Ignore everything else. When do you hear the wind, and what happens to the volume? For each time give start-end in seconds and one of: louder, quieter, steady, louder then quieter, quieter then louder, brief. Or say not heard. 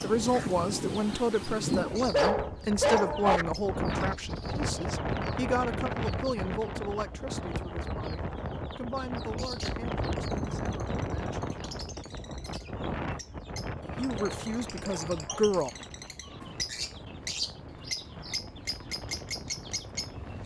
0.0-20.4 quieter.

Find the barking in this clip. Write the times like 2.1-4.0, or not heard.
2.1-3.5, 14.2-15.5.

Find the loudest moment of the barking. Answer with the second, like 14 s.
3 s.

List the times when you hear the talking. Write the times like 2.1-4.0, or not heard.
0.0-11.6, 13.9-15.7.